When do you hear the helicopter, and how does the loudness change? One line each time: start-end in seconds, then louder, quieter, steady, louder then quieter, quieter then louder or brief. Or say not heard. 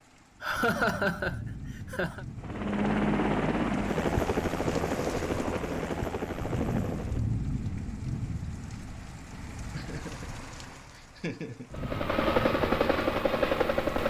2.4-7.3 quieter
11.7-14.0 brief.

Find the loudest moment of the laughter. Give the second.
1 s.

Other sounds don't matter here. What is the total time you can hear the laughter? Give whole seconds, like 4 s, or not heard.
4 s.